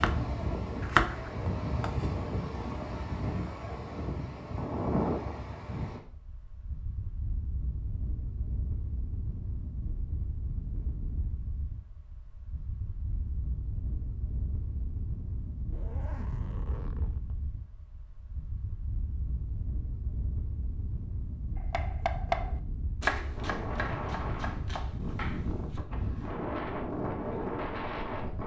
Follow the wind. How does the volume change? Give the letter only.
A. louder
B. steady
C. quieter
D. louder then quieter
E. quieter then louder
E.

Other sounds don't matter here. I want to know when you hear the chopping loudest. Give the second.
1 s.